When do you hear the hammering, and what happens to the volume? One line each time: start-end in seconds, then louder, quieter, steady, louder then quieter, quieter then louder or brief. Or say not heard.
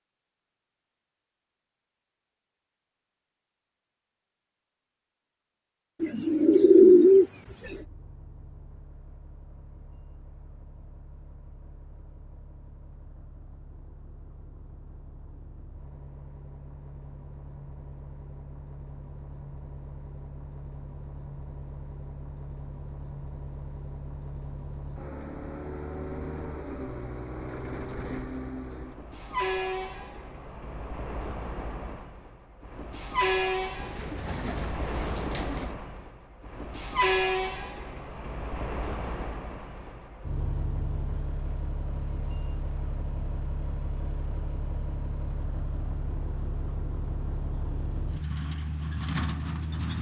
not heard.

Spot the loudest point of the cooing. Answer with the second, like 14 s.
7 s.